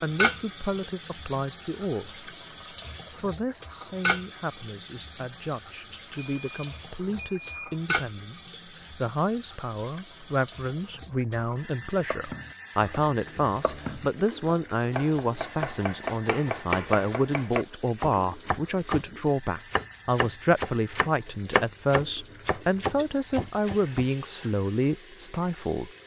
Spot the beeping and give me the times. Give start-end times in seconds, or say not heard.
6.2-7.8.